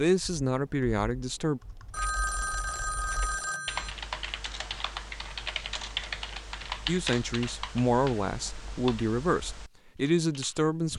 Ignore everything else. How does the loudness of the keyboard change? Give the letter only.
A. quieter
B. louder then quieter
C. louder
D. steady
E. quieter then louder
B.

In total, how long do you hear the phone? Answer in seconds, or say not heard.
2 s.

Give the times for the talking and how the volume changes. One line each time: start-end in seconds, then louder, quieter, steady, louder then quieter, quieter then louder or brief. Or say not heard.
0.0-1.6 brief
6.8-10.9 steady.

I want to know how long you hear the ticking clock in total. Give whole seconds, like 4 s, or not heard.
not heard.